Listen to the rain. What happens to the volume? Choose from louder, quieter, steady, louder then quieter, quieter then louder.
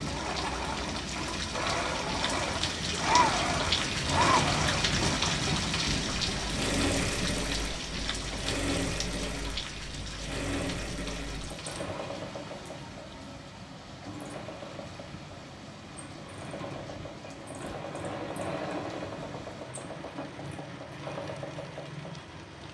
quieter.